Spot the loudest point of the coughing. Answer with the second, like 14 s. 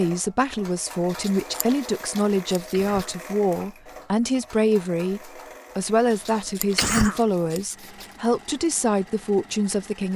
7 s.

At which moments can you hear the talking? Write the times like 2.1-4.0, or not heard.
0.0-10.1.